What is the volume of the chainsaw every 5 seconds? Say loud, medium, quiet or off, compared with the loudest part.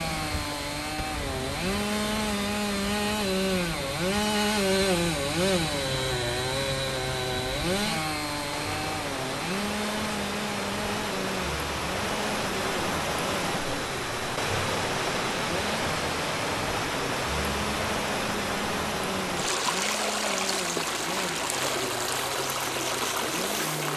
loud, loud, medium, medium, medium.